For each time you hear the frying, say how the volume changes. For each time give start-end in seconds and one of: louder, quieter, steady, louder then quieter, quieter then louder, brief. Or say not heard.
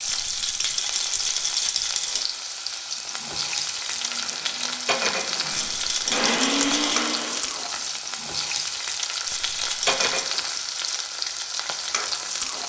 0.0-12.6 steady.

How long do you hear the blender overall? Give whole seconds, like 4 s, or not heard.
4 s.